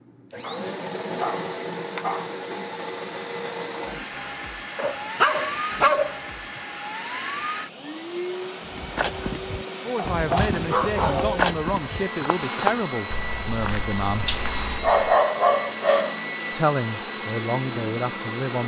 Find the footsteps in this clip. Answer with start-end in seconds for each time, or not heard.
8.7-15.2.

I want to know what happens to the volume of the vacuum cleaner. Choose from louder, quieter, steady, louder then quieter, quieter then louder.
steady.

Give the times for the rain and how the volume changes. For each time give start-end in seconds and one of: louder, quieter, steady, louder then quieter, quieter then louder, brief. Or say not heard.
not heard.